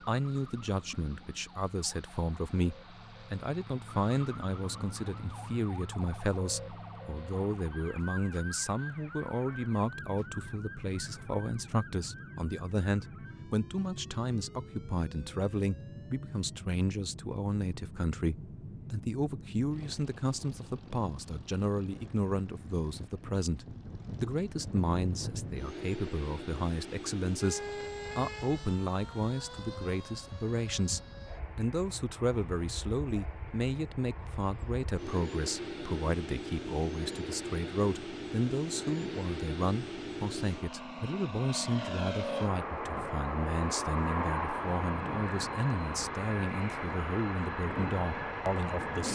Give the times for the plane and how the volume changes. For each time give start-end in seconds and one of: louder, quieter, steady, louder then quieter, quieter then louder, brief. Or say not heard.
0.0-49.1 louder.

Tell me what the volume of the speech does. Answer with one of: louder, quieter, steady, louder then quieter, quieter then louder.
steady.